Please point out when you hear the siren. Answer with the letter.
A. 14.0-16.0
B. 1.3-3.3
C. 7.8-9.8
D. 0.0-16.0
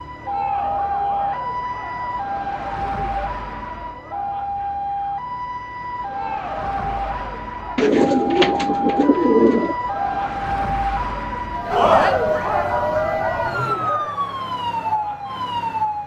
D.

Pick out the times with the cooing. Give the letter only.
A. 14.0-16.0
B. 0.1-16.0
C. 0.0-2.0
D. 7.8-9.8
D.